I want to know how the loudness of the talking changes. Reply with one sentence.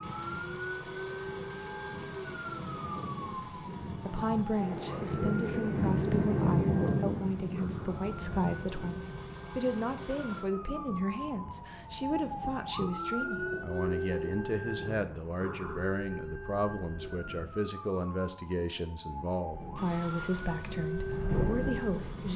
The loudness of the talking stays about the same.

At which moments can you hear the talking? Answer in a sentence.
You can hear the talking from 3.3 to 22.3 s.